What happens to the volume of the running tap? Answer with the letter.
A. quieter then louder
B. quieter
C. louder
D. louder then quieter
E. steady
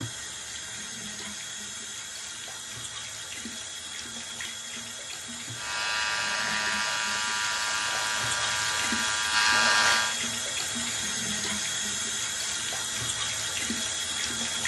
C.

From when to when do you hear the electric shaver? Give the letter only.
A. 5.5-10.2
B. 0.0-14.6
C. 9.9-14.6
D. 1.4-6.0
A.